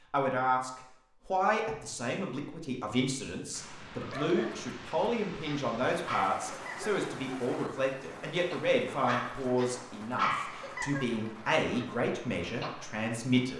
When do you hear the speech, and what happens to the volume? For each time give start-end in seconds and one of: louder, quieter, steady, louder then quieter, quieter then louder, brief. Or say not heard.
0.1-13.5 steady.